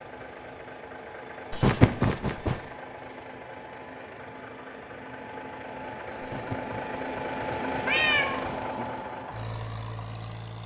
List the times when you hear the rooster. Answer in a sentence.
You can't hear the rooster here.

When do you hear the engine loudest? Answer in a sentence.
The volume of the engine peaks at 8 seconds.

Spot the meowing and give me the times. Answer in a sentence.
The meowing can be heard from 1.5 to 2.6 s and from 6.3 to 8.8 s.